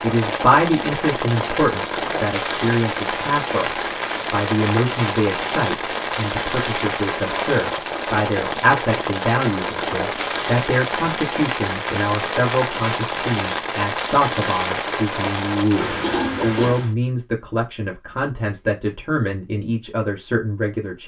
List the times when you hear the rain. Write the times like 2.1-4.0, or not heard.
0.0-16.9.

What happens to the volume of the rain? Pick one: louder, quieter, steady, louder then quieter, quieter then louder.
steady.